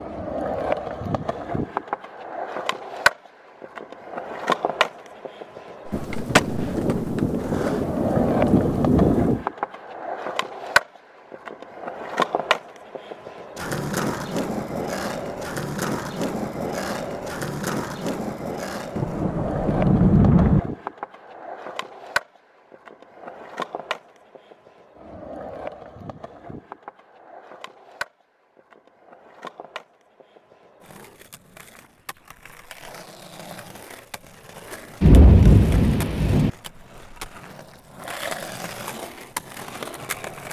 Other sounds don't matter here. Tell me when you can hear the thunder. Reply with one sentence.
The thunder can be heard from 5.9 to 9.4 s, from 18.9 to 20.6 s and from 35.0 to 36.5 s.